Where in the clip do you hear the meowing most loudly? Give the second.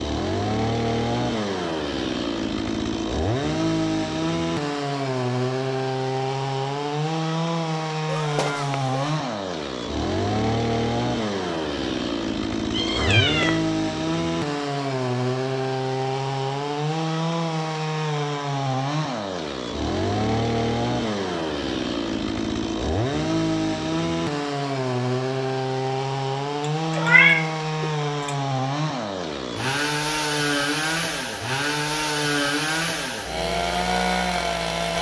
27 s.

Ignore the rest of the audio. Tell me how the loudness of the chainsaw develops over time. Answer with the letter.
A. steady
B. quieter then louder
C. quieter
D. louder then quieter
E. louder
A.